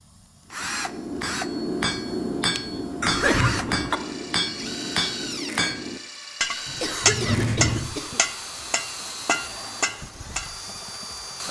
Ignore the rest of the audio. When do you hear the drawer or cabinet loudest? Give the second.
7 s.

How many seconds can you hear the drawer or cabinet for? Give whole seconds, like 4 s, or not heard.
2 s.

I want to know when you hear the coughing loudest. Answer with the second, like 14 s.
3 s.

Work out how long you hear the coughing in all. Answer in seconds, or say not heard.
3 s.